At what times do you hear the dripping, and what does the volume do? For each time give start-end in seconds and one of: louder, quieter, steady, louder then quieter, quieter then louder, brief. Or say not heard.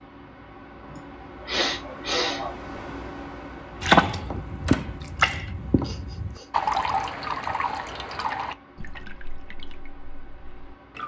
3.8-11.0 quieter.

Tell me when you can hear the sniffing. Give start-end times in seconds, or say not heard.
0.8-2.5, 5.8-6.5.